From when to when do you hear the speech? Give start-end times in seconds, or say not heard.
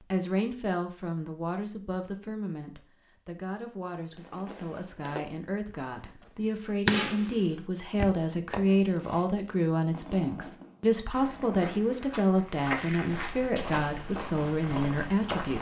0.0-15.5.